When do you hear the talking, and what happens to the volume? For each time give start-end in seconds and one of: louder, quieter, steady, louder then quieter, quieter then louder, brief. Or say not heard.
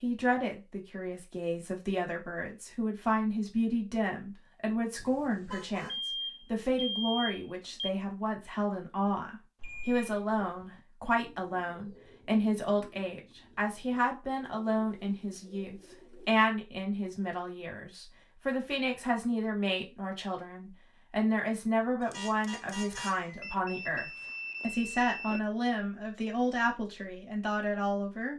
0.0-28.3 steady.